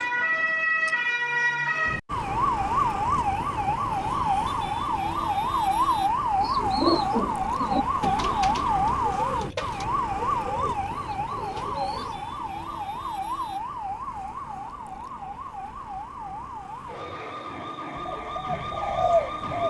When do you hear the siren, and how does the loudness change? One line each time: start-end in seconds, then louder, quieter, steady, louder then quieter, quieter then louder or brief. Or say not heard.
0.0-19.6 quieter.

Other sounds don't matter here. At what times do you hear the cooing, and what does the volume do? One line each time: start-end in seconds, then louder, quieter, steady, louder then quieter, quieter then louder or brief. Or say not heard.
6.4-12.2 quieter
18.2-19.6 brief.